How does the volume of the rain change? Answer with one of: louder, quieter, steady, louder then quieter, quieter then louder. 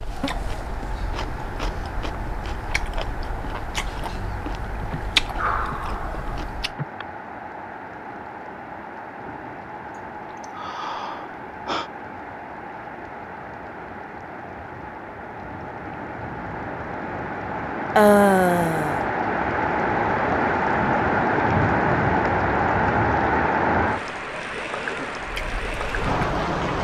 louder.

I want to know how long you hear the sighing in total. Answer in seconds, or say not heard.
5 s.